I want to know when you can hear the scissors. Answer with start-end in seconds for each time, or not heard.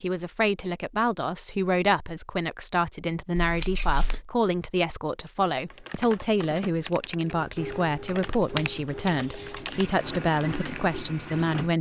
3.4-4.2, 8.2-9.9.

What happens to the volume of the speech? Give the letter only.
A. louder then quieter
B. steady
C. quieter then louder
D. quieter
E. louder
B.